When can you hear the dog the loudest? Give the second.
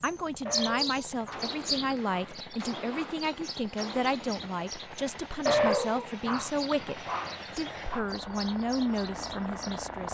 6 s.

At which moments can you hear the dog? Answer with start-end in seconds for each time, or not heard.
0.5-3.1, 5.5-8.1.